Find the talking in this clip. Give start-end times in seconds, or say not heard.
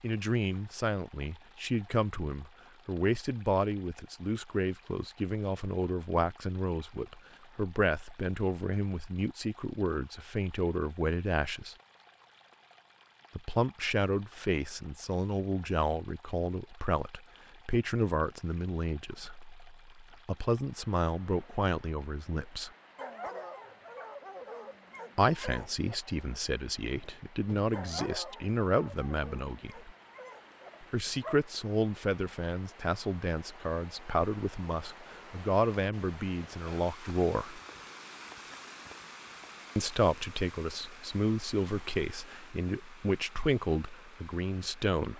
0.0-11.8, 13.3-22.7, 25.1-29.9, 30.8-37.6, 39.8-45.1.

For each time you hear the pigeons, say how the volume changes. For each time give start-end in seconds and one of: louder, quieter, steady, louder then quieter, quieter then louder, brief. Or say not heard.
not heard.